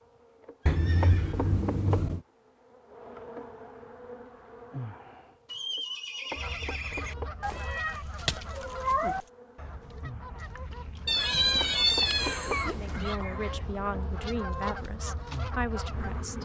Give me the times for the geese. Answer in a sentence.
You can hear the geese from 6.3 to 16.2 s.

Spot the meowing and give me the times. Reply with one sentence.
You can hear the meowing from 0.7 to 2.2 s, from 7.4 to 9.2 s and from 11.1 to 13.2 s.